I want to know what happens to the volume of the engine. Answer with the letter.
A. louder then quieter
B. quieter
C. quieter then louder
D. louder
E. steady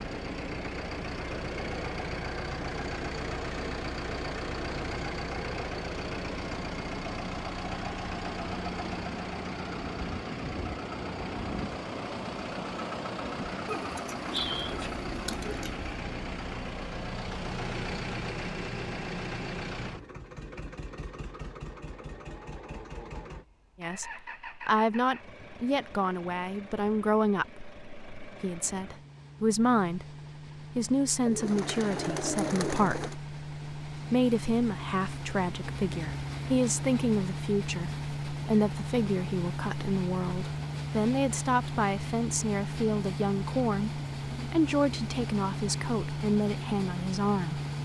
C.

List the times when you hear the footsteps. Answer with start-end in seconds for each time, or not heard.
not heard.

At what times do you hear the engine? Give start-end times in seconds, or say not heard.
0.0-47.8.